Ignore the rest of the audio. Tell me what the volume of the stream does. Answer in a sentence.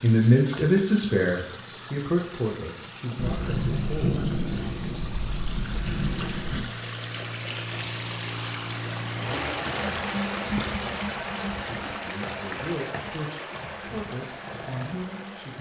The volume of the stream goes up, then down.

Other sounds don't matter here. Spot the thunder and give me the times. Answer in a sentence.
You can hear the thunder from 3.1 to 6.7 s.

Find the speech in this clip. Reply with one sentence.
The speech can be heard from 0.0 to 4.2 s and from 11.5 to 15.5 s.